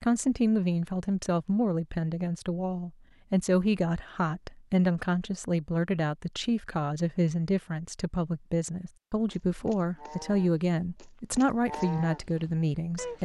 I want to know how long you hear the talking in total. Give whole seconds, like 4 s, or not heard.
13 s.